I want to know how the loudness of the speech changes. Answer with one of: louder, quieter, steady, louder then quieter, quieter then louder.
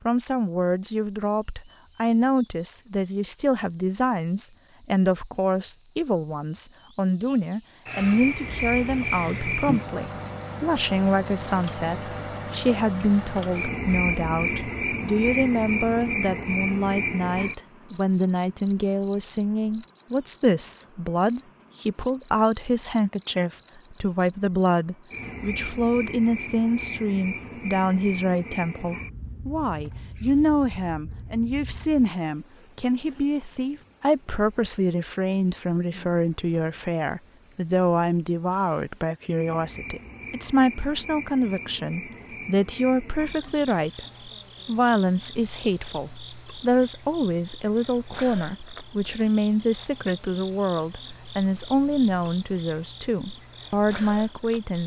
steady.